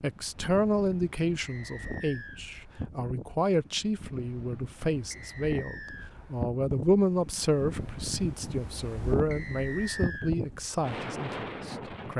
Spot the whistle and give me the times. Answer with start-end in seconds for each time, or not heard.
1.4-2.4, 5.1-6.1, 9.3-10.3.